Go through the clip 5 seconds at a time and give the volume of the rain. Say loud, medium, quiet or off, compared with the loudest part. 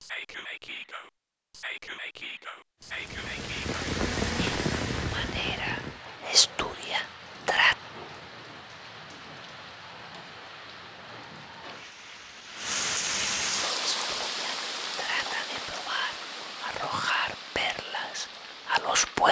loud, medium, loud, medium.